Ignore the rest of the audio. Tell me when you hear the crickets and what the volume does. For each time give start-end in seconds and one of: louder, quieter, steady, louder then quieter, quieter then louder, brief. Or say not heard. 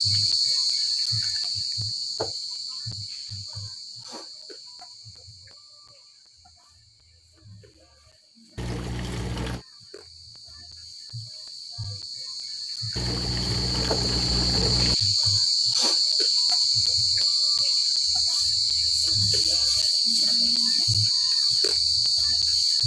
0.0-22.8 quieter then louder.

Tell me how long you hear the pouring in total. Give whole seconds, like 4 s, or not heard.
3 s.